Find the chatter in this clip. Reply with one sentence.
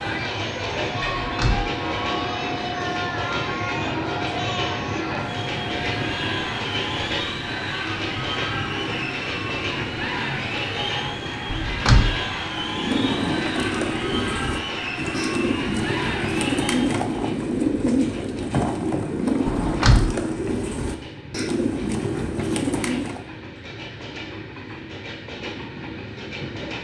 You can hear the chatter from 0.0 to 17.1 s.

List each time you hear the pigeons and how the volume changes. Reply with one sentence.
The pigeons can be heard from 12.4 to 23.2 s, at a steady volume.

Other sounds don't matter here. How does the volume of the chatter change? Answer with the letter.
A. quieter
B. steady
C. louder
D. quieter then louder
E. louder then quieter
B.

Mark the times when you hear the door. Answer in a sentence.
You can hear the door from 1.2 to 1.7 s, from 11.4 to 12.2 s and from 19.4 to 20.1 s.